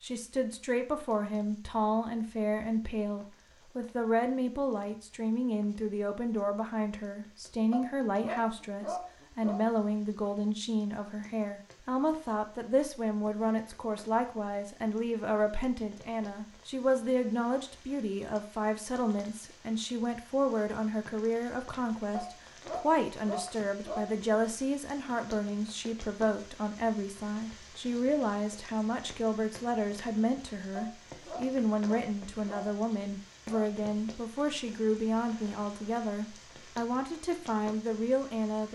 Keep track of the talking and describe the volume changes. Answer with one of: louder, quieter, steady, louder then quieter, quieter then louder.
steady.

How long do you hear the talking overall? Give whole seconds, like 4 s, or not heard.
39 s.